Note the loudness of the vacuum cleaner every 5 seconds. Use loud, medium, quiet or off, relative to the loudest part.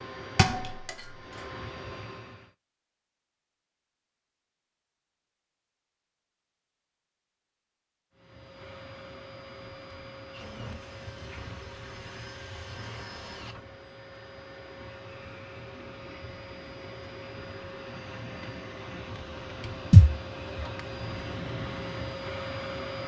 medium, medium, medium, medium, loud.